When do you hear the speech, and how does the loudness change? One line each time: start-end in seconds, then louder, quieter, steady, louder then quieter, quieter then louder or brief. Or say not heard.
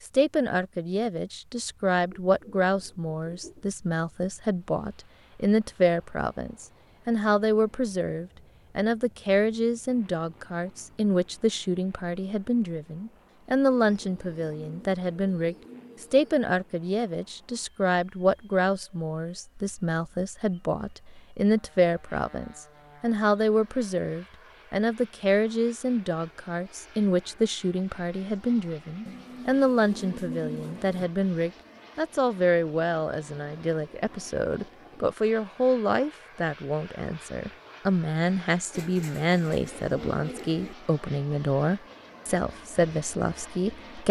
0.1-44.0 steady.